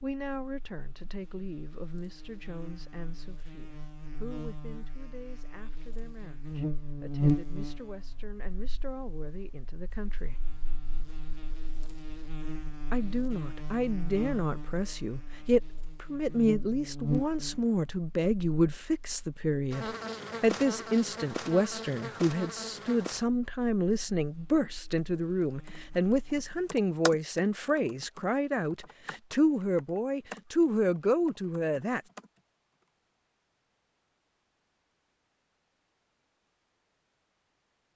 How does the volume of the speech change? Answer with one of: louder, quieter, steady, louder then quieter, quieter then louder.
louder.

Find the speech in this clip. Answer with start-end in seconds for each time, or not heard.
0.0-10.4, 12.9-32.0.